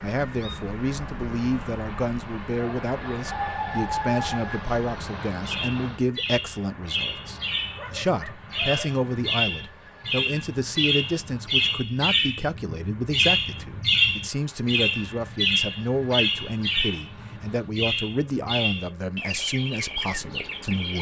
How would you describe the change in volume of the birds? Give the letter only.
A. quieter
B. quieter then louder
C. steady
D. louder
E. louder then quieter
E.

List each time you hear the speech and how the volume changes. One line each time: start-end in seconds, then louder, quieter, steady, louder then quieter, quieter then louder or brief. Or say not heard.
0.0-20.9 steady.